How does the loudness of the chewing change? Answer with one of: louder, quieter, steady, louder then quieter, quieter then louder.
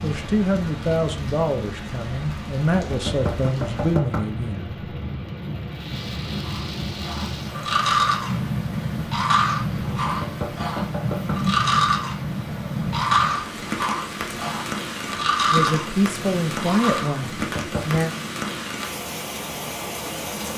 steady.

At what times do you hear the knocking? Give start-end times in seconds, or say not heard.
2.9-4.3, 10.0-11.5, 17.2-18.1.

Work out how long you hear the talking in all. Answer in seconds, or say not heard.
7 s.